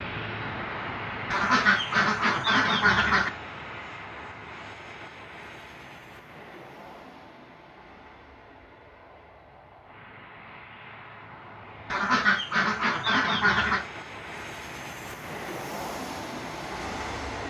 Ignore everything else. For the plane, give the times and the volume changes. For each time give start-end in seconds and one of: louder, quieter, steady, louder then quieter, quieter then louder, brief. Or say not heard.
0.0-17.4 quieter then louder.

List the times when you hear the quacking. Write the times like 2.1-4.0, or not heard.
1.3-3.3, 11.9-13.8.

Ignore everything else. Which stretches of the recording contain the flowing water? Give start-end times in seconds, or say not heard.
not heard.